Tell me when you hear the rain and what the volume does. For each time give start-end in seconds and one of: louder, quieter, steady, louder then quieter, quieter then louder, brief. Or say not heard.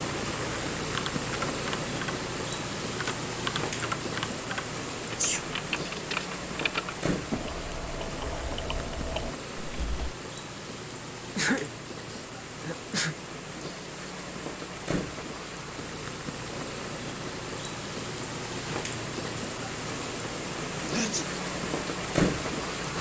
0.0-22.9 quieter then louder.